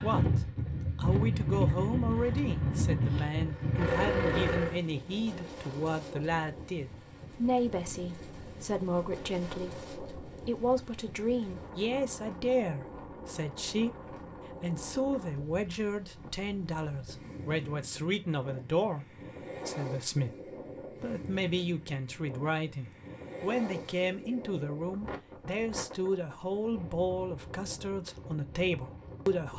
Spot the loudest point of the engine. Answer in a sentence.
The loudest moment of the engine is at 4 seconds.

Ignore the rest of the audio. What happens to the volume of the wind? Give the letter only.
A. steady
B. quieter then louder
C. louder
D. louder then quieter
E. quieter
E.